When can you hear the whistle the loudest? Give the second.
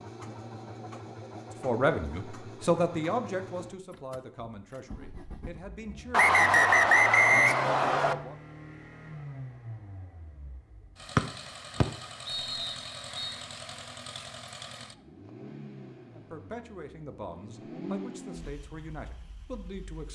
7 s.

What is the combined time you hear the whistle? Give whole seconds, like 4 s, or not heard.
4 s.